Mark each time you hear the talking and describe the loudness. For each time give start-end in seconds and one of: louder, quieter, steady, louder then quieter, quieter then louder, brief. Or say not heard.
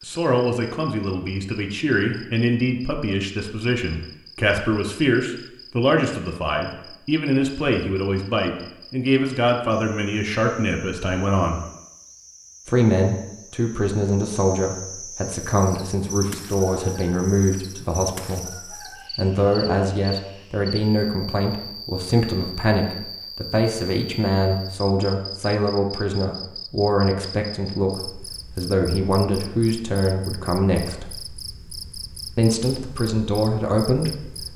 0.1-11.6 steady
12.7-18.5 steady
19.1-31.1 steady
32.4-34.5 brief.